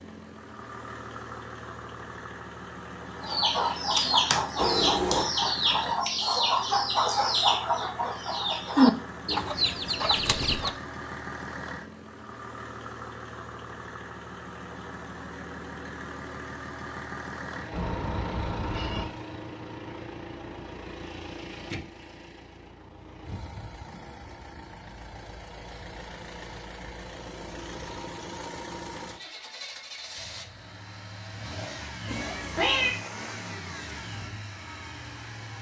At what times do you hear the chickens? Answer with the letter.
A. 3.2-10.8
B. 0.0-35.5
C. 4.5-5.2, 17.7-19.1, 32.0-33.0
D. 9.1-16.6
A.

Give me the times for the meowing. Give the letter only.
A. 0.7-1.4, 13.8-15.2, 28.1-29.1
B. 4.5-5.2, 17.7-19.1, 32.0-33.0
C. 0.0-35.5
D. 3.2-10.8
B.